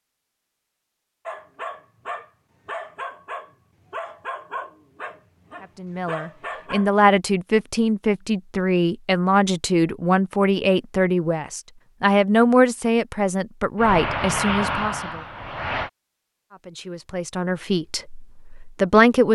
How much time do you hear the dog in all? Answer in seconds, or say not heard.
6 s.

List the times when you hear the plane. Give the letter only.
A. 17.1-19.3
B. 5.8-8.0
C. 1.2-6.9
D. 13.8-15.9
D.